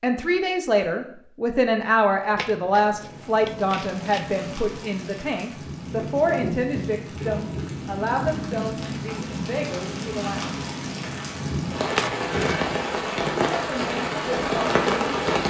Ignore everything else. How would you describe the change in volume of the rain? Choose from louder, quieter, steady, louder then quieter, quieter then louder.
louder.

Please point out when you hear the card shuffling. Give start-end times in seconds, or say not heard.
2.4-4.3, 11.9-12.6.